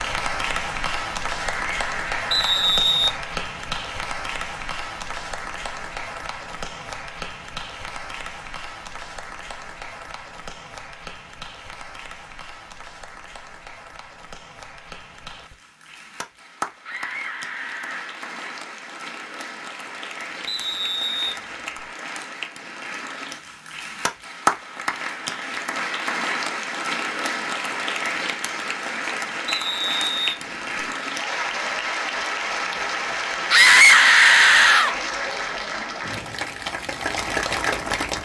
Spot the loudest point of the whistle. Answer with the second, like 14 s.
3 s.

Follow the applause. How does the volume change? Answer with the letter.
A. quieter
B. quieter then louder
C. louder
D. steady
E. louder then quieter
B.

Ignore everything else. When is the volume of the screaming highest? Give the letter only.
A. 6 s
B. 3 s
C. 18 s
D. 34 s
D.